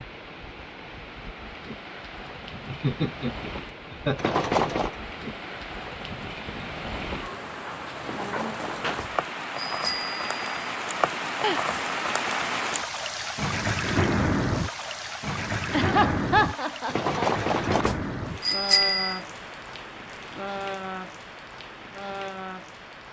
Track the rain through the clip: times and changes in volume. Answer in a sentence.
You can hear the rain from 0.0 to 23.0 s, getting louder then quieter.